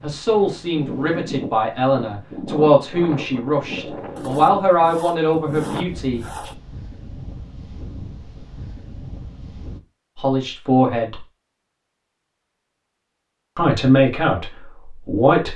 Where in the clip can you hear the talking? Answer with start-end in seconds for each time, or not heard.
0.0-6.5, 10.2-11.2, 13.6-15.5.